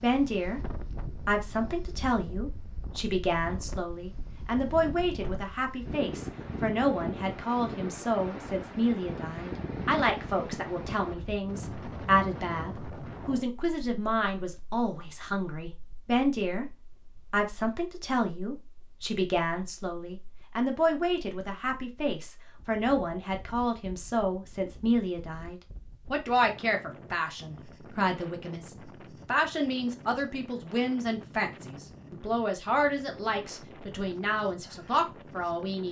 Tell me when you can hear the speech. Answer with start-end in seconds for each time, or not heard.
0.0-0.6, 1.2-16.6, 17.3-35.8.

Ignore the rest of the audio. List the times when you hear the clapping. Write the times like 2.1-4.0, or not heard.
not heard.